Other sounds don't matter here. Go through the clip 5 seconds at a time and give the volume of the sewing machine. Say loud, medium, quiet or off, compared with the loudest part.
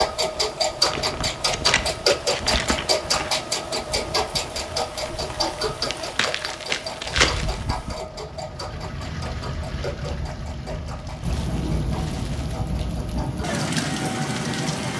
loud, medium, quiet.